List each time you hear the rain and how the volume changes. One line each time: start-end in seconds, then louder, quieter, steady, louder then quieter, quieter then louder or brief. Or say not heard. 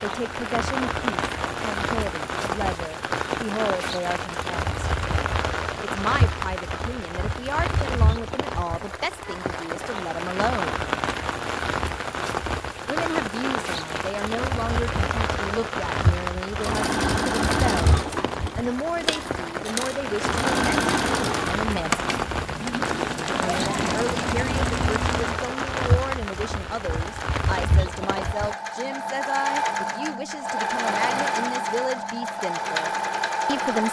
0.0-28.6 steady.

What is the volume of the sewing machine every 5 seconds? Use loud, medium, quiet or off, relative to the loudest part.
off, off, off, loud, loud, loud, loud.